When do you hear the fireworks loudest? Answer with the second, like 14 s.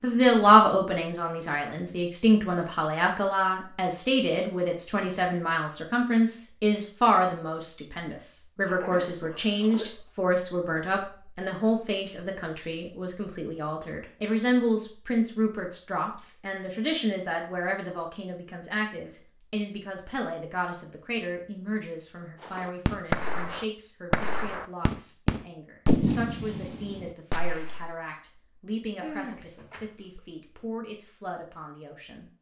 26 s.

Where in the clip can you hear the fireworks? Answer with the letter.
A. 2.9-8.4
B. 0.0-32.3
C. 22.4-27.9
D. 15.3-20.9
C.